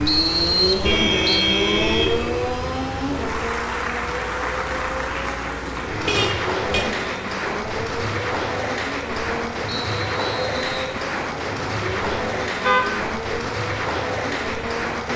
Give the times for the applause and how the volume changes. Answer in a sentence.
You can hear the applause from 0.0 to 15.1 s, getting louder.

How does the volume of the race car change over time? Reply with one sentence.
The loudness of the race car goes down.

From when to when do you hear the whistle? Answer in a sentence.
You can hear the whistle from 0.1 to 1.4 s and from 9.7 to 10.9 s.